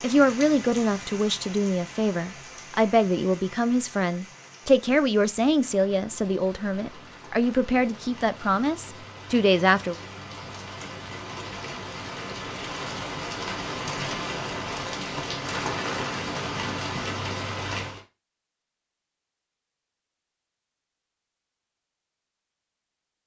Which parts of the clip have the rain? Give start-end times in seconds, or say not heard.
0.0-18.1.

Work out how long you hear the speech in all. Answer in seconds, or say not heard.
10 s.